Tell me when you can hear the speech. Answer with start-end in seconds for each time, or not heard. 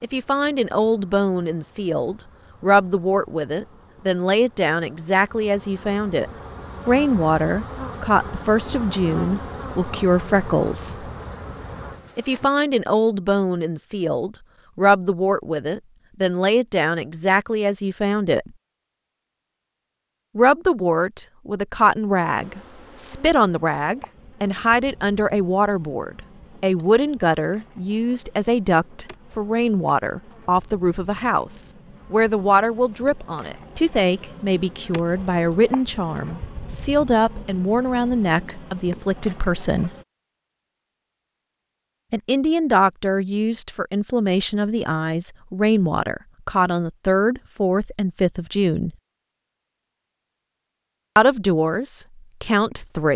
0.0-11.1, 12.2-18.5, 20.4-39.9, 42.1-48.9, 51.1-53.1.